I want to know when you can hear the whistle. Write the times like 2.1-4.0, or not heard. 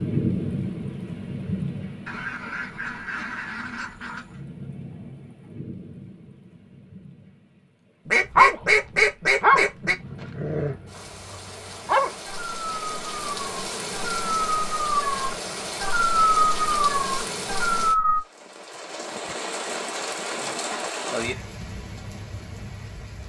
not heard.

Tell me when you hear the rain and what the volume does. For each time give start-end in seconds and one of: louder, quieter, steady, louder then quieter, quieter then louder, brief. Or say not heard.
0.0-23.2 quieter then louder.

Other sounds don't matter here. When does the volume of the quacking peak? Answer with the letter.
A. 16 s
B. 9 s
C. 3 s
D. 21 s
B.